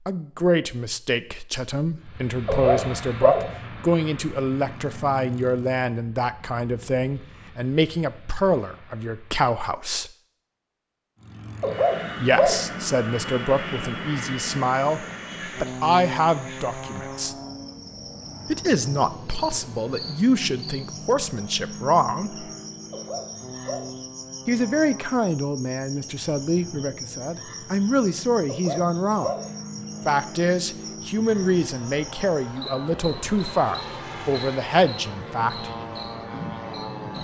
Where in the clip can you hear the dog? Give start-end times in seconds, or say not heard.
2.5-3.5, 11.6-12.7, 22.9-23.9, 28.4-29.5.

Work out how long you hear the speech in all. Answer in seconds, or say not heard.
30 s.